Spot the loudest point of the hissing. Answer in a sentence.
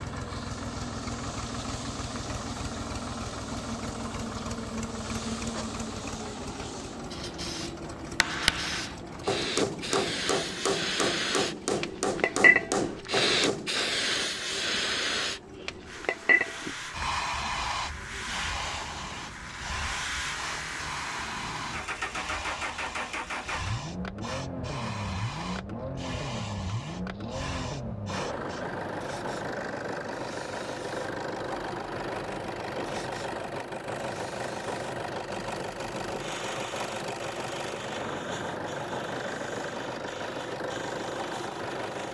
The volume of the hissing peaks at 13 seconds.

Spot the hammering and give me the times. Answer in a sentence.
You can hear the hammering from 8.1 to 14.8 s.